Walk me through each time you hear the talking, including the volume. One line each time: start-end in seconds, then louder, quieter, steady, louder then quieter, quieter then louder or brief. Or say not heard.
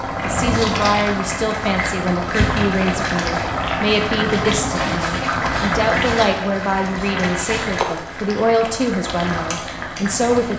0.2-10.5 steady.